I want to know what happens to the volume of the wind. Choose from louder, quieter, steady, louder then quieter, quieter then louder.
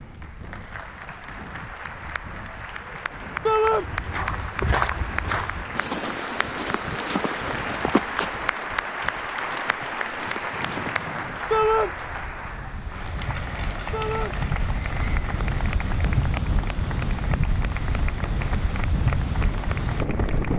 louder.